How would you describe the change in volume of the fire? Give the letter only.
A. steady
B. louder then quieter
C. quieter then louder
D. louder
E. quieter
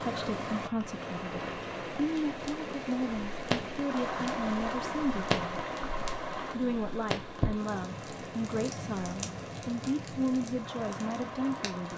B.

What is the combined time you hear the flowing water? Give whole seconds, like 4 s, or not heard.
12 s.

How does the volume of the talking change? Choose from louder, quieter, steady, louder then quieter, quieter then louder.
steady.